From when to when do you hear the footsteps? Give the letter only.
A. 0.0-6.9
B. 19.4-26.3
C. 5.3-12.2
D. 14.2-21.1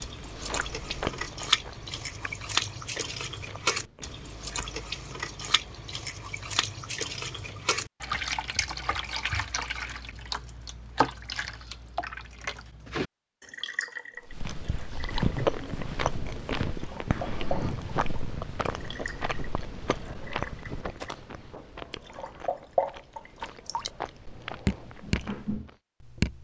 D.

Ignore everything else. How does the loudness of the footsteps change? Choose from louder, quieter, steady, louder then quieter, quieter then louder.
quieter.